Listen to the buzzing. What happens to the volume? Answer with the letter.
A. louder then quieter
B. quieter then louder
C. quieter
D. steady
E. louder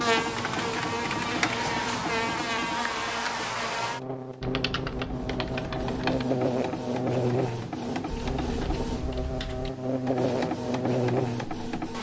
D.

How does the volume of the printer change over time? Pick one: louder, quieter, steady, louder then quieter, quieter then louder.
quieter then louder.